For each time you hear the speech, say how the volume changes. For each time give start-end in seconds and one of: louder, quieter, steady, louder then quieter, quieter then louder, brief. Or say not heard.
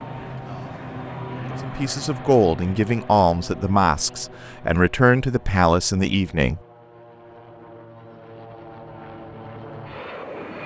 1.6-6.6 steady.